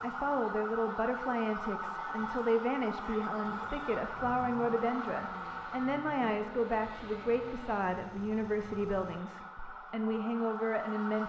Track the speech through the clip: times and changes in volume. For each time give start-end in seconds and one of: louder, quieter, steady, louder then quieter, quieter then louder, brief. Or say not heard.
0.0-11.2 steady.